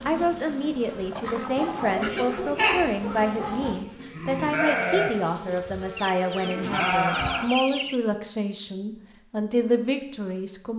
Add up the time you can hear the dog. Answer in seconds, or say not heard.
2 s.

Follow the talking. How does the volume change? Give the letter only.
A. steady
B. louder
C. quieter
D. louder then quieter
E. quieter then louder
A.